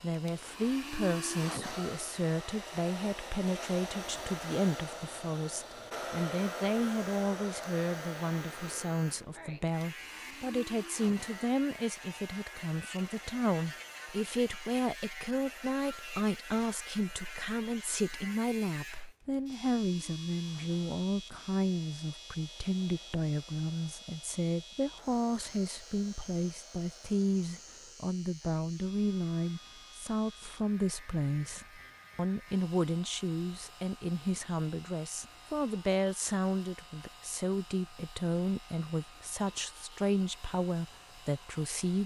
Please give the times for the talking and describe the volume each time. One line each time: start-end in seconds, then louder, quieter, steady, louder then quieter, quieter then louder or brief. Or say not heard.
0.0-42.0 steady.